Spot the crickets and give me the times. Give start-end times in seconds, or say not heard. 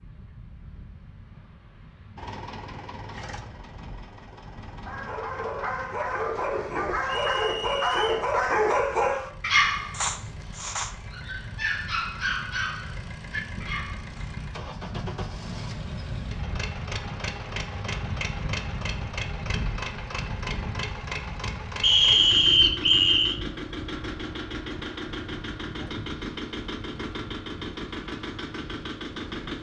not heard.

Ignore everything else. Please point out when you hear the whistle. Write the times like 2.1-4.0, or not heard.
7.0-8.3, 21.8-23.4.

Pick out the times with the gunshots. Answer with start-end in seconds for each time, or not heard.
not heard.